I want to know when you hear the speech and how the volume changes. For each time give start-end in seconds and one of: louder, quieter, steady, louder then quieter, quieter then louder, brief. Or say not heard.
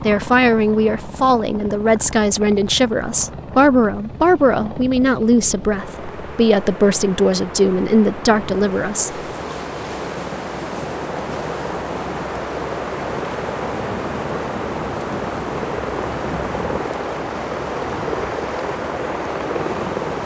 0.0-9.2 steady.